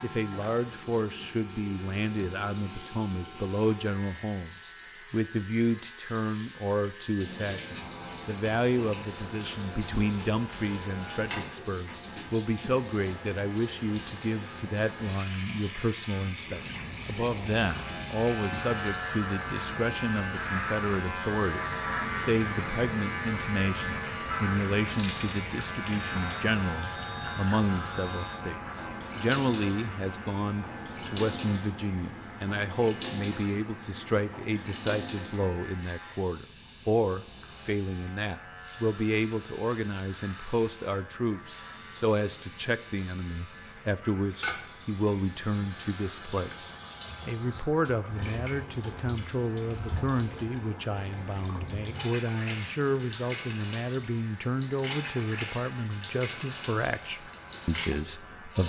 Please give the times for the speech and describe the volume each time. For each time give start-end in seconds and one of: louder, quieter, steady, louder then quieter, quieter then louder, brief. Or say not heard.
0.0-58.6 steady.